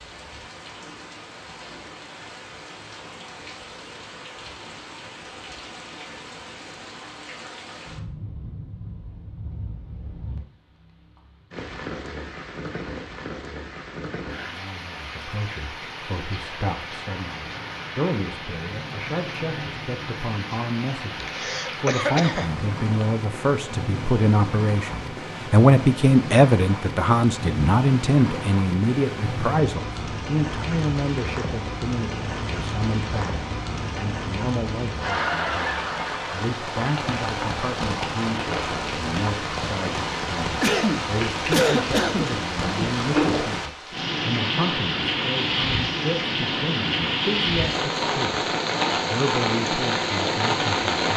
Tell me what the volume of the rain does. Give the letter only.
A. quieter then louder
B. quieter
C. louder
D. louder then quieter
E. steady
C.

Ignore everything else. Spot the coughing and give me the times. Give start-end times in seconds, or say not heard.
21.2-23.1, 40.6-42.4.